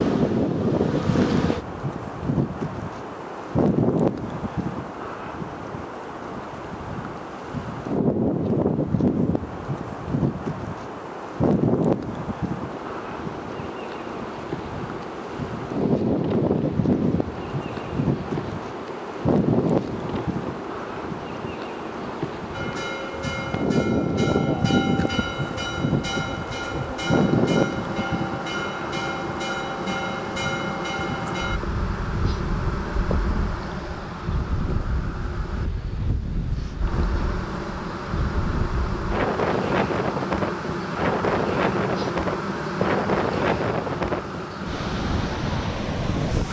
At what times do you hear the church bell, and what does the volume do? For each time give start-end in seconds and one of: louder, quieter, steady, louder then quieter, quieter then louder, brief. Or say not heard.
22.5-31.6 steady.